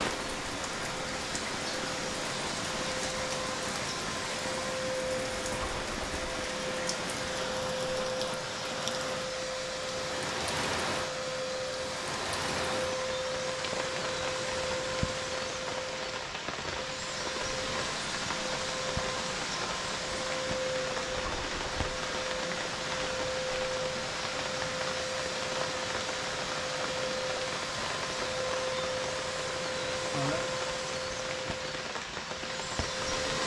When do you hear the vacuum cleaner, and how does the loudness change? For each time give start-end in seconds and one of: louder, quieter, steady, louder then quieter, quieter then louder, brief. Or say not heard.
0.0-33.4 steady.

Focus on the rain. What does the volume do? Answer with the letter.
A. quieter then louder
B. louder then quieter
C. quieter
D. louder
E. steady
E.